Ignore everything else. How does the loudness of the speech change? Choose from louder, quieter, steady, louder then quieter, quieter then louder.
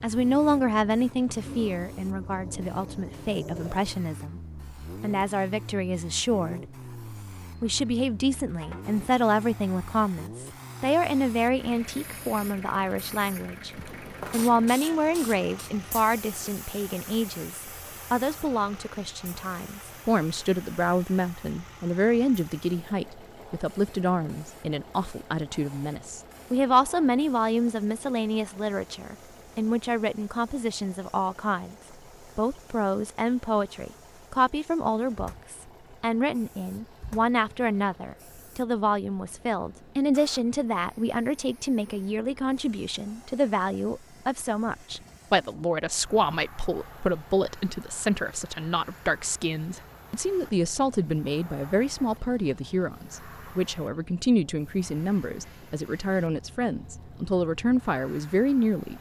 steady.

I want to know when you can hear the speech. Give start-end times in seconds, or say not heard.
0.0-6.7, 7.6-13.7, 14.3-31.8, 32.4-58.9.